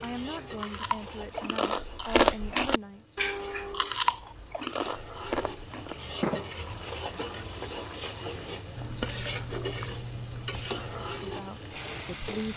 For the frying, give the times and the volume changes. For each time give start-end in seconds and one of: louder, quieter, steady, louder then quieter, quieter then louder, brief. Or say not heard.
0.0-12.5 louder.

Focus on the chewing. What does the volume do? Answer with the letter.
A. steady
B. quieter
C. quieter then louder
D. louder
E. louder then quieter
C.